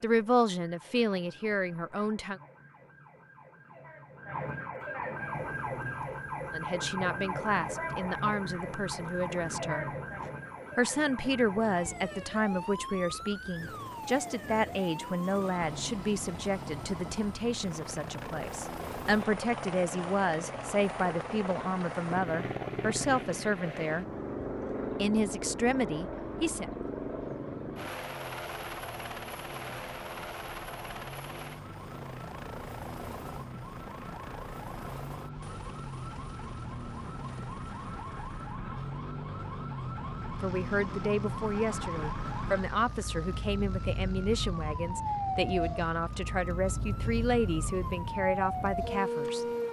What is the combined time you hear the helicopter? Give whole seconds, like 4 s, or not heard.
44 s.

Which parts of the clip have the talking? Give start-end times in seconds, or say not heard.
0.0-2.4, 6.5-9.8, 10.8-24.1, 24.9-26.6, 40.3-49.5.